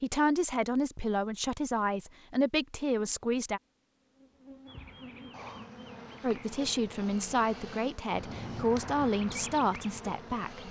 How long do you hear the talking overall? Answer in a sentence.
You can hear the talking for 8 seconds altogether.